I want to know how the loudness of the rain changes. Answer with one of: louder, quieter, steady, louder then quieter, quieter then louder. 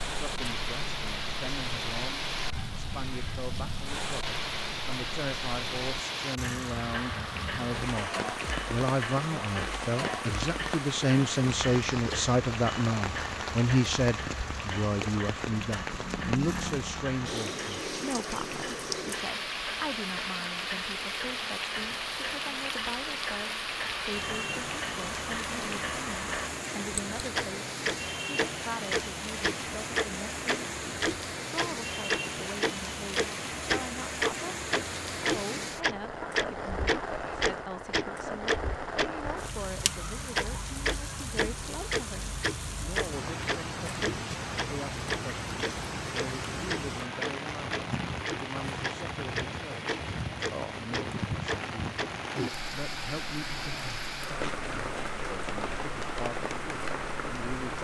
steady.